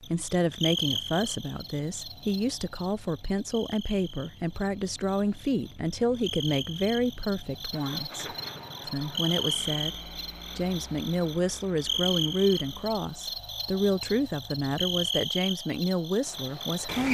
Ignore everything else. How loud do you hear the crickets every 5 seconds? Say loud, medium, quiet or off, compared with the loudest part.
medium, loud, loud, loud.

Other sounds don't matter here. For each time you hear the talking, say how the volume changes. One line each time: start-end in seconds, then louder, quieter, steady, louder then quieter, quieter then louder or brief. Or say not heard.
0.0-17.0 steady.